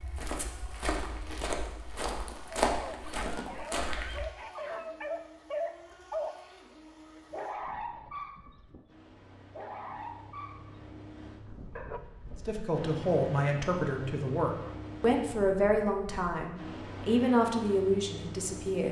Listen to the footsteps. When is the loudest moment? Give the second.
3 s.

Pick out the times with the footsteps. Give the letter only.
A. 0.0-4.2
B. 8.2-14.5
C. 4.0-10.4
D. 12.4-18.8
A.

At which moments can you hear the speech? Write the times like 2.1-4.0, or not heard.
12.4-18.8.